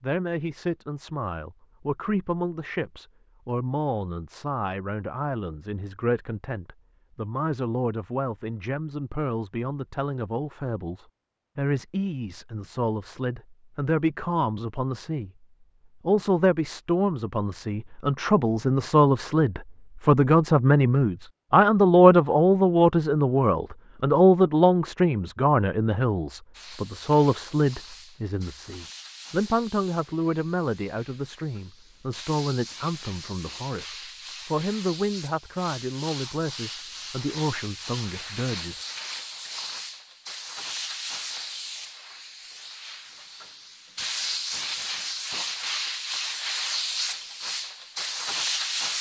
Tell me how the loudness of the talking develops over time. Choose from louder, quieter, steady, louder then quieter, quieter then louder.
louder then quieter.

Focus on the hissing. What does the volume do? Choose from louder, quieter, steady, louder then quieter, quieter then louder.
louder.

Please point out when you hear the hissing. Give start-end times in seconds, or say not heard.
26.5-48.9.